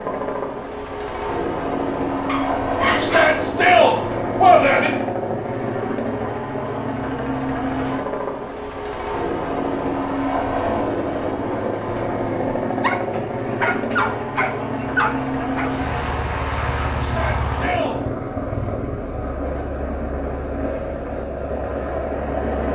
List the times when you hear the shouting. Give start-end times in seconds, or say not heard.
3.0-4.9, 17.0-18.0.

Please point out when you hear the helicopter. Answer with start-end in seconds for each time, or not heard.
0.0-22.7.